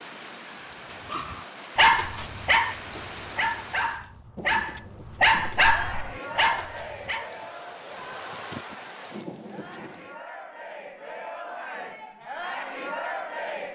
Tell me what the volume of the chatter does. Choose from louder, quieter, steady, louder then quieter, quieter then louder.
quieter then louder.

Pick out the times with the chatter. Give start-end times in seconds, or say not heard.
5.5-13.7.